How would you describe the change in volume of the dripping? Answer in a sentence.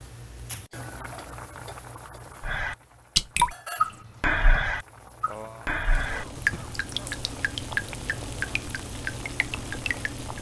The loudness of the dripping goes down.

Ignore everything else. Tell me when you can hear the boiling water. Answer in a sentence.
The boiling water can be heard from 0.0 to 10.3 s.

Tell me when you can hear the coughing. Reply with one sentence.
You can hear the coughing from 0.7 to 2.2 s and from 5.2 to 7.2 s.